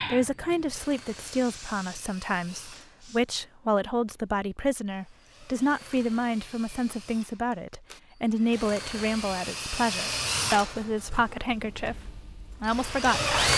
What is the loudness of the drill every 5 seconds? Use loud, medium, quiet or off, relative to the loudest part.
quiet, medium, loud.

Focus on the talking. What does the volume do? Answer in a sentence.
The volume of the talking stays about the same.